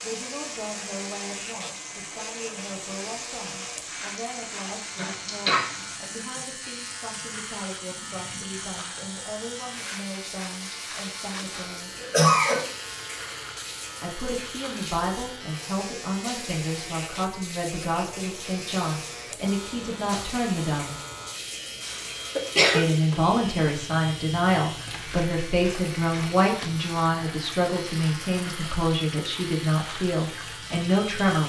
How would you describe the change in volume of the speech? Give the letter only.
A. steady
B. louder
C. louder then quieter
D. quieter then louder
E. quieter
B.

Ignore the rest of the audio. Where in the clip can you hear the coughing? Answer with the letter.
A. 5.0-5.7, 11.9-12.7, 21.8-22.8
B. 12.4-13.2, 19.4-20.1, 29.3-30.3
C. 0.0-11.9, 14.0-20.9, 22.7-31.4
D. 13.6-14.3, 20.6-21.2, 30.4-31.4
A.